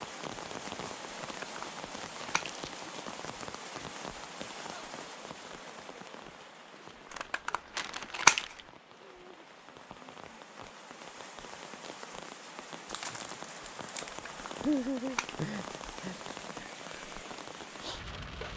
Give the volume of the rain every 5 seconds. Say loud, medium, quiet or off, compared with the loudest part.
loud, medium, loud, loud.